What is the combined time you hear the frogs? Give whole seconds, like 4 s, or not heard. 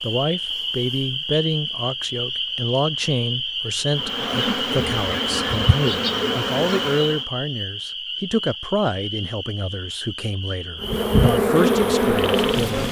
13 s.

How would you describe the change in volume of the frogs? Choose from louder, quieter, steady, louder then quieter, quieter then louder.
quieter.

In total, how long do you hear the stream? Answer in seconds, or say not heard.
not heard.